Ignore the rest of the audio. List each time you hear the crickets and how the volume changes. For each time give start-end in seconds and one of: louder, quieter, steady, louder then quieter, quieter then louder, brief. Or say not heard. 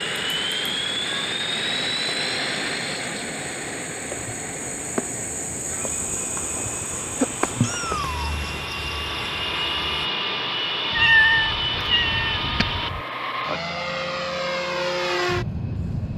0.0-10.1 louder then quieter.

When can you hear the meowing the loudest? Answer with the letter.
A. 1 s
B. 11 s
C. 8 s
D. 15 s
B.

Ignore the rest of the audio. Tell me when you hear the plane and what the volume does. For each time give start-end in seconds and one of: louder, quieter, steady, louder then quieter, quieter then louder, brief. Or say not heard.
0.0-16.1 quieter then louder.